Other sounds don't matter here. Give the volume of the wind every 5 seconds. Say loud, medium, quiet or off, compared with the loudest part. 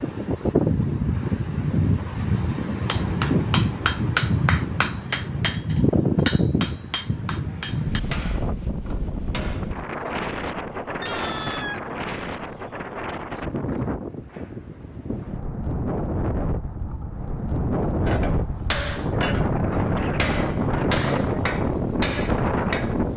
loud, loud, medium, loud, loud.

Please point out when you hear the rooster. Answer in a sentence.
The rooster can be heard from 11.0 to 13.8 s.